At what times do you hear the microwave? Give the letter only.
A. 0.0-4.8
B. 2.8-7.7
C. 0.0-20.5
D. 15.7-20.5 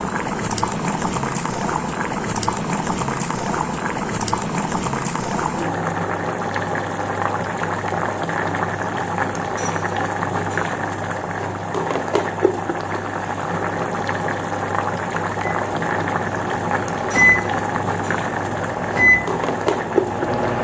D.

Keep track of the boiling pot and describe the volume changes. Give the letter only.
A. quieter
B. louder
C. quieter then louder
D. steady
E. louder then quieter
D.